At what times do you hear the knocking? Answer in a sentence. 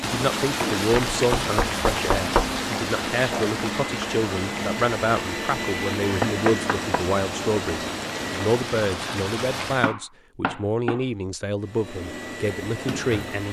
The knocking can be heard from 1.1 to 2.6 s, from 6.2 to 7.0 s and from 9.8 to 11.1 s.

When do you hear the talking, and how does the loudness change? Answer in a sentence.
The talking can be heard from 0.0 to 13.4 s, at a steady volume.